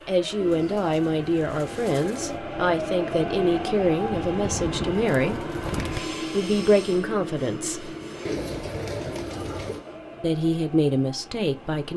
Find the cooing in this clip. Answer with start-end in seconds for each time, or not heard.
0.4-2.4, 4.0-6.0, 8.2-9.8.